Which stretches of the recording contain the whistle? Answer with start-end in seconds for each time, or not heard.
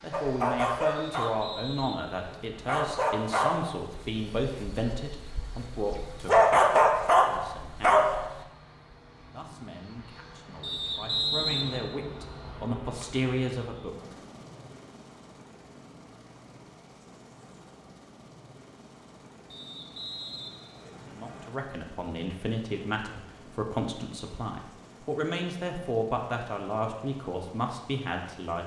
0.9-2.8, 10.6-11.8, 19.5-21.5.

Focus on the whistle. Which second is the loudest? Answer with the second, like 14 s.
11 s.